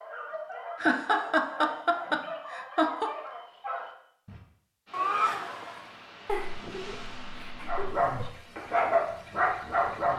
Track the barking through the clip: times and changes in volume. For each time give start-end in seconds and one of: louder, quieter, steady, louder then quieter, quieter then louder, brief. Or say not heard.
0.0-4.3 steady
7.7-10.1 brief.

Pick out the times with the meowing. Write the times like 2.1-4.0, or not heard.
4.9-5.9.